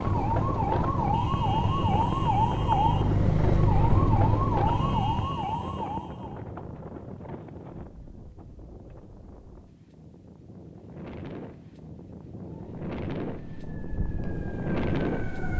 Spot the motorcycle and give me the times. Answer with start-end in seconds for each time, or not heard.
0.0-5.2.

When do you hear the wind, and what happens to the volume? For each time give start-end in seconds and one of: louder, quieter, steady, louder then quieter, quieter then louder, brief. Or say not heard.
0.0-15.5 quieter then louder.